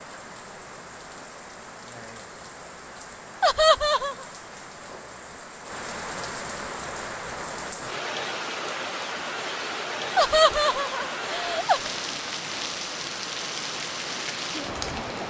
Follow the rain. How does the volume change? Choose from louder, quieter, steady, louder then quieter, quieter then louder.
louder.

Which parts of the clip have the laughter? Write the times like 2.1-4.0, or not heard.
3.4-4.2, 10.2-11.9.